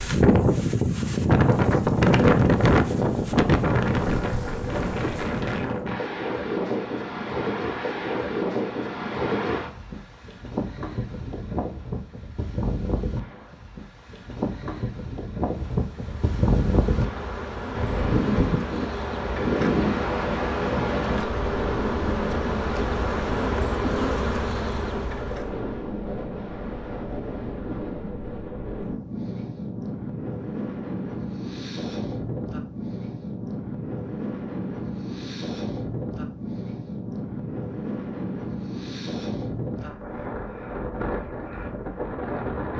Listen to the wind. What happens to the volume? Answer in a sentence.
The volume of the wind goes down.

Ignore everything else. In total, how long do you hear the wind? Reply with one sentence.
The wind can be heard for 43 seconds in total.